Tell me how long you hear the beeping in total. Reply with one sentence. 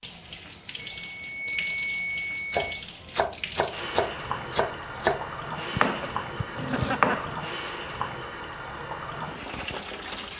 The beeping can be heard for 2 seconds in total.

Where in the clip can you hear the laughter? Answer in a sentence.
You can hear the laughter from 6.5 to 7.3 s.